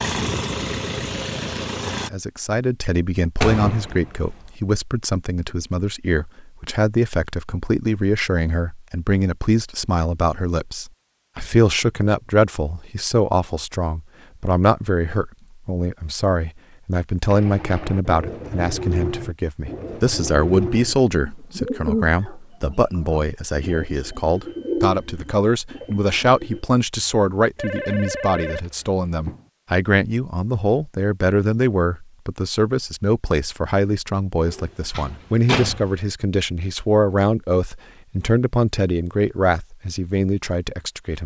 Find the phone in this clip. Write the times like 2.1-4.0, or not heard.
27.6-29.4.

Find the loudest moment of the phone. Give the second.
28 s.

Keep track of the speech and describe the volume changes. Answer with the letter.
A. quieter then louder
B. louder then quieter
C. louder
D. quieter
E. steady
E.